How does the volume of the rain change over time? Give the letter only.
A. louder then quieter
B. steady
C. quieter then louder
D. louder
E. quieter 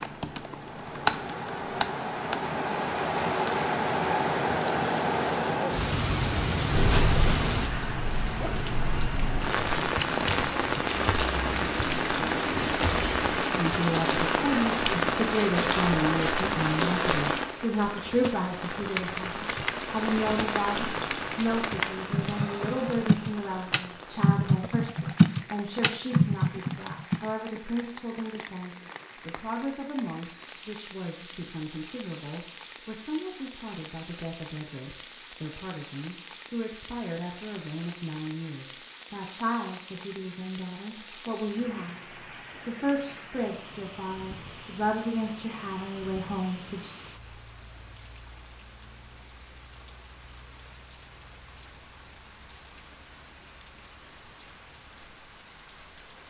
E.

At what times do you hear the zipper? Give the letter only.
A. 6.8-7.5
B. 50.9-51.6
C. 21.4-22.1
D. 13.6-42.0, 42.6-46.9
A.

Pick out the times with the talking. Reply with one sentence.
The talking can be heard from 13.6 to 42.0 s and from 42.6 to 46.9 s.